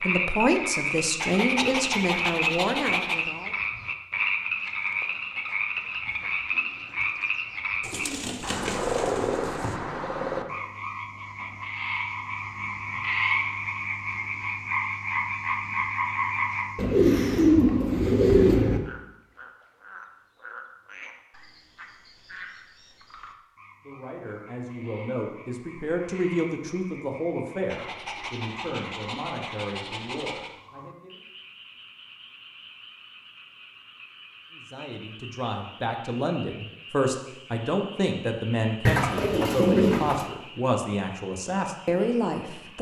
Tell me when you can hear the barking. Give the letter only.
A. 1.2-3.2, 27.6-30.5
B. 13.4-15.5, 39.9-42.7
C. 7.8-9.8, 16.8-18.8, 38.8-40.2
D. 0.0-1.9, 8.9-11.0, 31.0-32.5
A.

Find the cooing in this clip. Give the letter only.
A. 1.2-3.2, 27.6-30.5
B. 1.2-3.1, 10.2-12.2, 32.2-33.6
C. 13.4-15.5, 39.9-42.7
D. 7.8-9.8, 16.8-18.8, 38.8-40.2
D.